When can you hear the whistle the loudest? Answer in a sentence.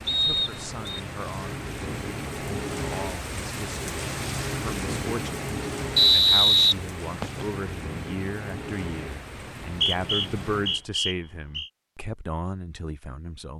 The volume of the whistle peaks at 6 seconds.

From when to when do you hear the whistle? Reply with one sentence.
The whistle can be heard from 0.1 to 1.0 s, from 6.0 to 7.5 s and from 9.7 to 11.7 s.